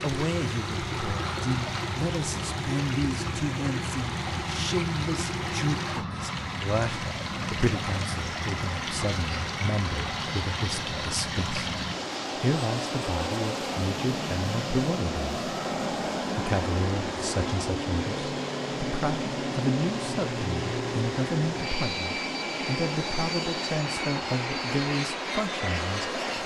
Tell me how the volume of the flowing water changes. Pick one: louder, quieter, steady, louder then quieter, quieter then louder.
steady.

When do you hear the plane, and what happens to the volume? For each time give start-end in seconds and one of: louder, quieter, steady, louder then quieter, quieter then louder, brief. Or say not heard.
0.0-26.4 steady.